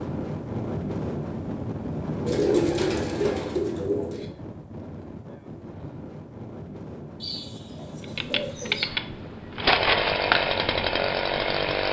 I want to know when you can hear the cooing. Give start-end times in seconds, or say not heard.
2.2-4.2, 7.2-8.8.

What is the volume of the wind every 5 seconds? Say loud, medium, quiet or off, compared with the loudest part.
loud, medium, medium.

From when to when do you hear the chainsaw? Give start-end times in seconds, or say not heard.
8.2-11.8.